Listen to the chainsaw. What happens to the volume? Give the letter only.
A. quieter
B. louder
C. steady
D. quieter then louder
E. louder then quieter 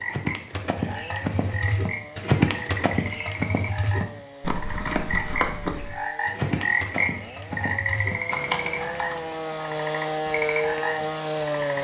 B.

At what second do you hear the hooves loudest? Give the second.
2 s.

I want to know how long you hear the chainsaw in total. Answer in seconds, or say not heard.
12 s.